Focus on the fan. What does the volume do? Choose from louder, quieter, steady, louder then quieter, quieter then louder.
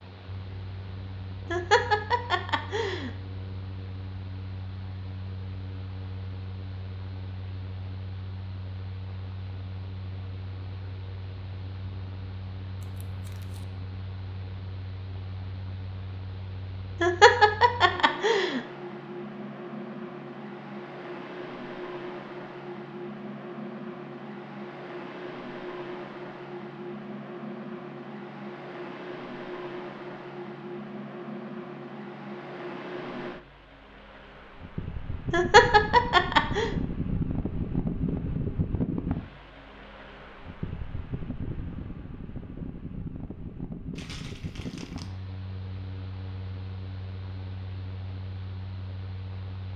louder then quieter.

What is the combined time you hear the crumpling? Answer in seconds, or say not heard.
2 s.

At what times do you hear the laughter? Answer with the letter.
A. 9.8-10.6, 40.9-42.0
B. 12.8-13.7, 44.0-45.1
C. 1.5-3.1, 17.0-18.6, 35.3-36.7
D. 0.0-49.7
C.